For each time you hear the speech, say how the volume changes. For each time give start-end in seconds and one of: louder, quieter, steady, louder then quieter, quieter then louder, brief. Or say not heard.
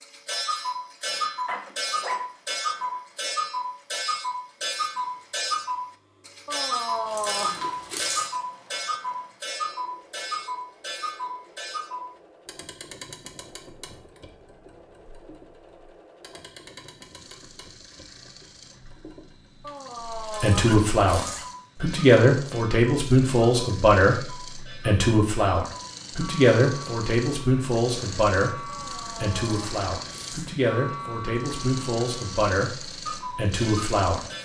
20.2-34.2 quieter.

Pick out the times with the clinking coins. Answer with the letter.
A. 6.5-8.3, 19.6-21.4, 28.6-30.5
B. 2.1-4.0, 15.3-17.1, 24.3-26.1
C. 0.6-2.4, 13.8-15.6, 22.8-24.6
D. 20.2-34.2
A.